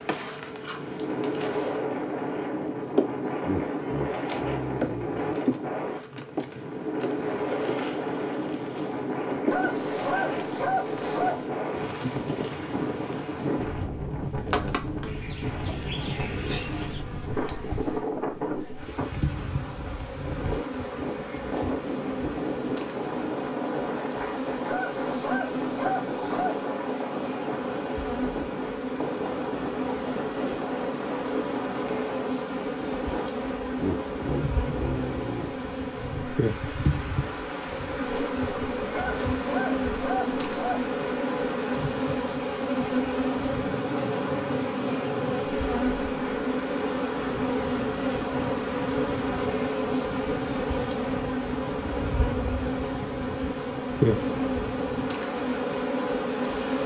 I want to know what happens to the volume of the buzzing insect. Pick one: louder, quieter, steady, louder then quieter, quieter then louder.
louder.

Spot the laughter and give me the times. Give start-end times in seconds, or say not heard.
3.4-5.3, 33.8-35.5.